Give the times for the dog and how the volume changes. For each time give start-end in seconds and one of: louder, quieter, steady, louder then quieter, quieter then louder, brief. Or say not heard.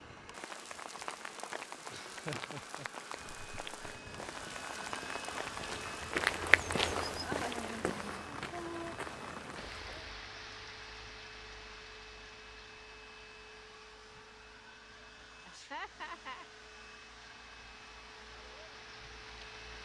not heard.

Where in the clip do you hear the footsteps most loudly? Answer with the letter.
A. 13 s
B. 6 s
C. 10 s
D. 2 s
B.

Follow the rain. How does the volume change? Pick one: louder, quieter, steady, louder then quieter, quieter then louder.
quieter.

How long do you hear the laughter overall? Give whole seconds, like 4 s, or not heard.
4 s.